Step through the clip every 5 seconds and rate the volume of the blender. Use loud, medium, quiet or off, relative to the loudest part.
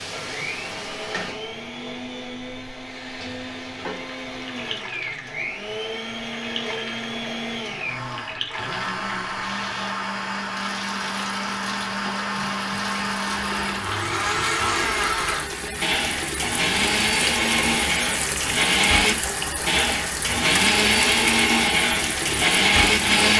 quiet, medium, medium, loud, loud.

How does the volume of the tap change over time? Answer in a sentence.
The volume of the tap goes up.